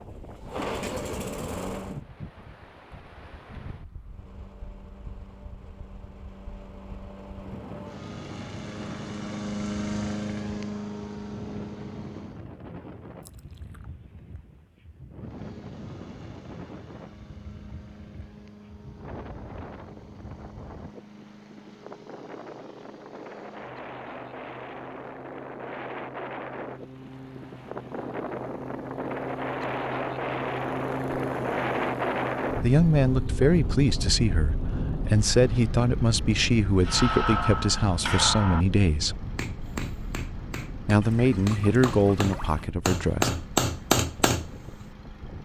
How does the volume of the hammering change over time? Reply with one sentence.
The loudness of the hammering goes down, then up.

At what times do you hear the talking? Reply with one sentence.
The talking can be heard from 32.6 to 39.1 s and from 40.9 to 43.3 s.